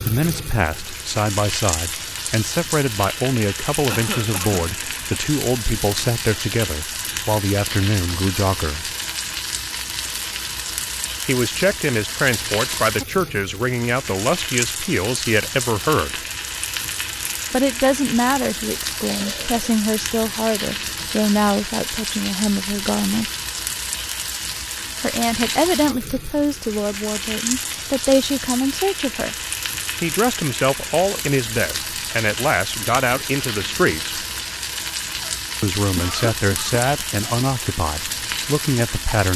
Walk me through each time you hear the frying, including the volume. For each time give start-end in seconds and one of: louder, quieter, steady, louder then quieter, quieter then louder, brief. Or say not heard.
0.0-39.3 steady.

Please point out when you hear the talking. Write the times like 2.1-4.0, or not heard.
0.1-8.9, 11.2-16.2, 17.5-23.3, 25.0-29.4, 30.0-34.2, 35.6-39.3.